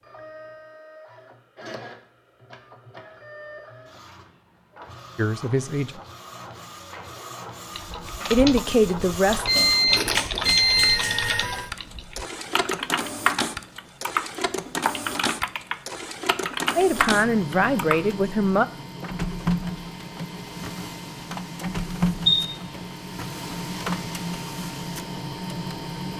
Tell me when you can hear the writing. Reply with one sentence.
You can't hear the writing here.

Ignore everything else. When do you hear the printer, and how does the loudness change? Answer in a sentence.
You can hear the printer from 0.0 to 26.1 s, getting louder.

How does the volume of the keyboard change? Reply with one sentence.
The loudness of the keyboard stays about the same.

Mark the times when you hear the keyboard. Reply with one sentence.
You can hear the keyboard from 7.8 to 18.0 s.